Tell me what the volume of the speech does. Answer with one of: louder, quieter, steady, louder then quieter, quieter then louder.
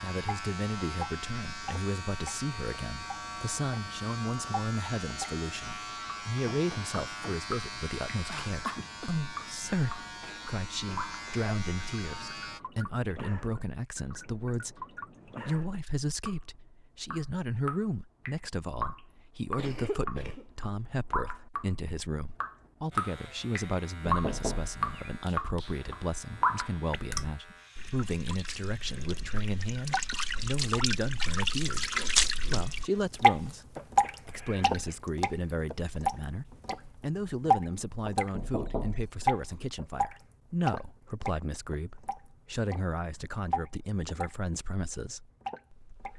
steady.